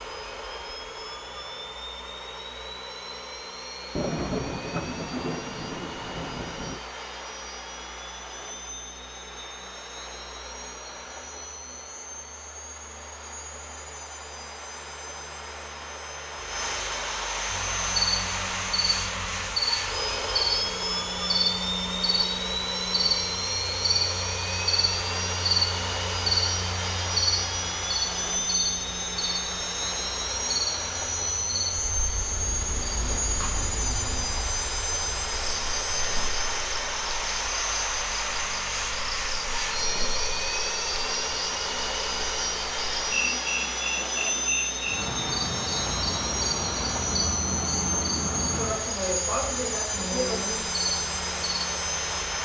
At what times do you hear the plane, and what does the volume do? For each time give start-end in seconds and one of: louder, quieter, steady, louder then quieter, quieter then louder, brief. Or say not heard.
0.0-52.4 louder.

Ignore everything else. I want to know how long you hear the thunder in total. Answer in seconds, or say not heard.
3 s.